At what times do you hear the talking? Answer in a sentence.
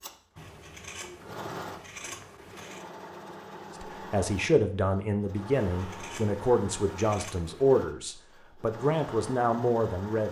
The talking can be heard from 3.8 to 10.2 s.